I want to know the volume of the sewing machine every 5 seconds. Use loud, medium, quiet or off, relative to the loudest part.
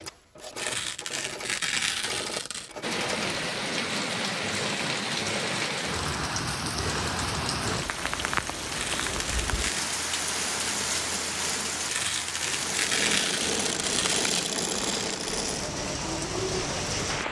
medium, medium, loud, loud.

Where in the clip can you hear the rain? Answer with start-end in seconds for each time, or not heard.
2.8-17.2.